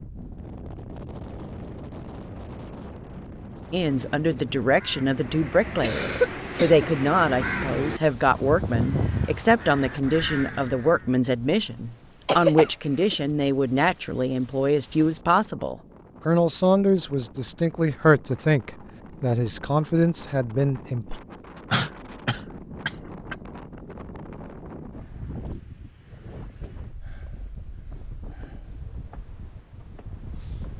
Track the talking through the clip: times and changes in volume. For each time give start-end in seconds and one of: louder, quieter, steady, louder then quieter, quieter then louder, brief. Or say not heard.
3.7-21.2 steady.